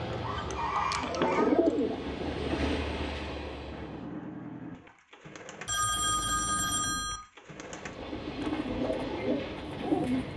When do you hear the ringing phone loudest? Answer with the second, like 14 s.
6 s.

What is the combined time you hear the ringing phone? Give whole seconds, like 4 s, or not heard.
2 s.